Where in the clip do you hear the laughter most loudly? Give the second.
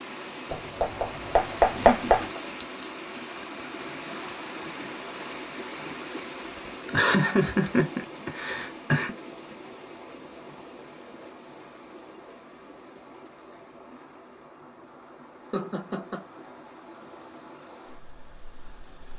7 s.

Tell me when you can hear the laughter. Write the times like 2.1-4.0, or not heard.
1.8-2.3, 6.8-9.2, 15.5-16.2.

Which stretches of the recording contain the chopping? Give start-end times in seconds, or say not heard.
0.5-2.2.